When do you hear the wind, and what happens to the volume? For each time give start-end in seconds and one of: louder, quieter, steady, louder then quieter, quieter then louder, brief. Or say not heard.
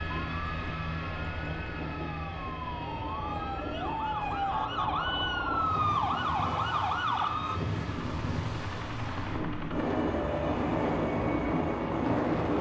0.0-12.5 louder.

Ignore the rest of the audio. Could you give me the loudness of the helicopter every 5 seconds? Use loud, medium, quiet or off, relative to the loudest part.
medium, medium, loud.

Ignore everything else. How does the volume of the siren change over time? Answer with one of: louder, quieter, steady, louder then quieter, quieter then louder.
louder.